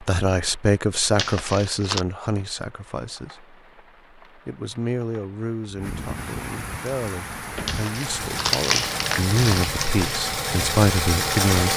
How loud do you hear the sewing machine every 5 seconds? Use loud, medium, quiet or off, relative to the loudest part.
off, medium, loud.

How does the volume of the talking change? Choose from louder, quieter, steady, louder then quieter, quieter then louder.
quieter then louder.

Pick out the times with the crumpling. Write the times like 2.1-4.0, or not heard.
1.1-2.0, 7.7-10.2.